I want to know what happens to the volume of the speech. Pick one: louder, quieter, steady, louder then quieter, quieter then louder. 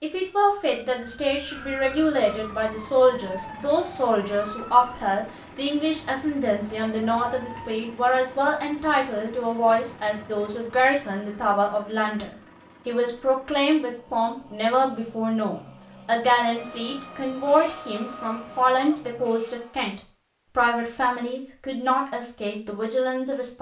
steady.